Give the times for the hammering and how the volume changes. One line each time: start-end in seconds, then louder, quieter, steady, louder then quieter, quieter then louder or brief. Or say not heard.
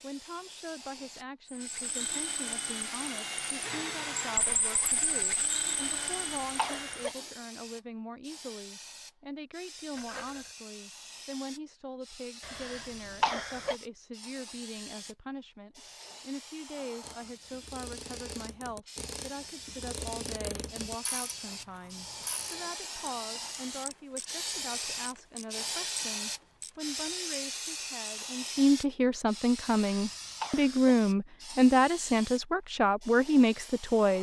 not heard.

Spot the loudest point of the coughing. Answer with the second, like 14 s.
13 s.